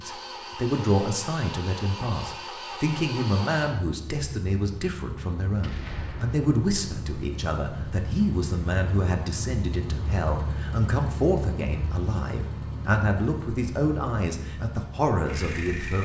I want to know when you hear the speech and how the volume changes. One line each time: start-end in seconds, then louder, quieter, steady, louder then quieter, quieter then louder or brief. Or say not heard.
0.0-16.0 steady.